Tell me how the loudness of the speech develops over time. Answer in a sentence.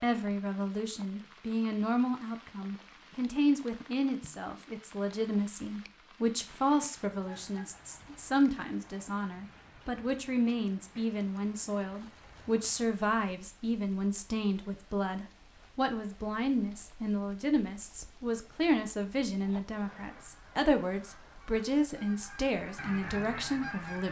The volume of the speech stays about the same.